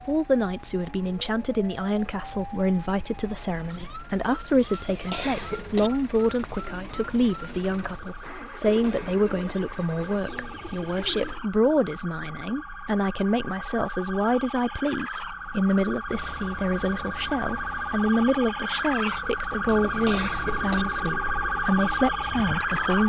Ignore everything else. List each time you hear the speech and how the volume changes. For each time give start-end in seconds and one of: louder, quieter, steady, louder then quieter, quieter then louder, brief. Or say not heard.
0.1-23.0 steady.